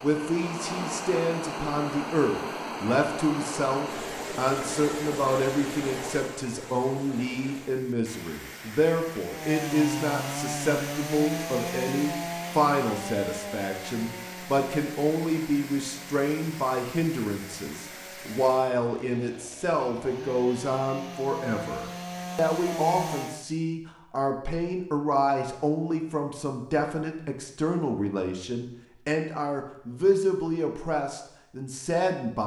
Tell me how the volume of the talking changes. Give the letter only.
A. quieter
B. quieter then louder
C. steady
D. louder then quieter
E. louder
C.